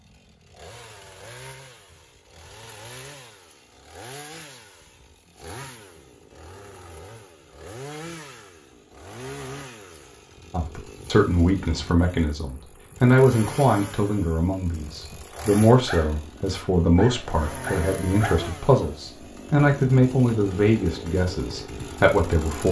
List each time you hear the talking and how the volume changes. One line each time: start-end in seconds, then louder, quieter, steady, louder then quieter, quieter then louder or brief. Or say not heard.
10.5-22.6 steady.